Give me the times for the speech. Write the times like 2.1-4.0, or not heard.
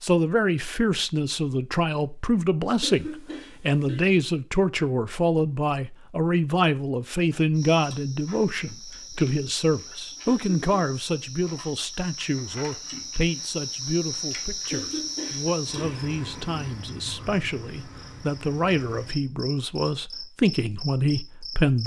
0.0-21.8.